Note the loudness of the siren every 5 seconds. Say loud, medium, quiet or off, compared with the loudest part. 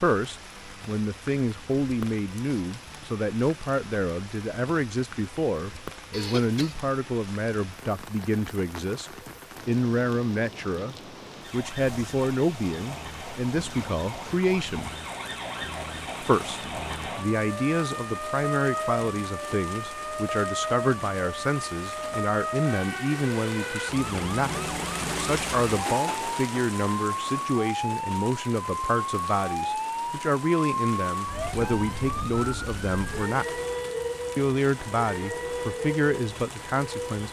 off, off, medium, loud, loud, loud, loud, loud.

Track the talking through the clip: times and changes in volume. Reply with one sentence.
The talking can be heard from 0.0 to 14.9 s, at a steady volume; from 16.2 to 33.6 s, at a steady volume; and briefly from 34.4 to 37.2 s.